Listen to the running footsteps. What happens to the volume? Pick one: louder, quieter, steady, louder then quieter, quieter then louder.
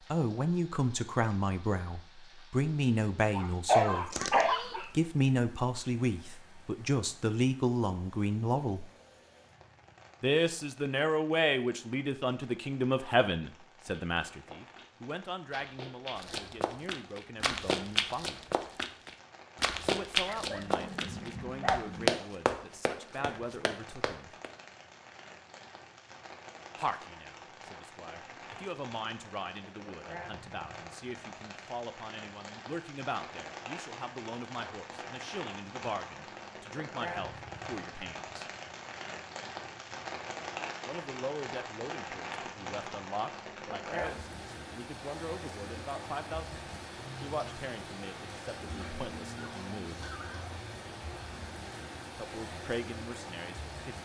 louder.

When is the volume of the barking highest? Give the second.
4 s.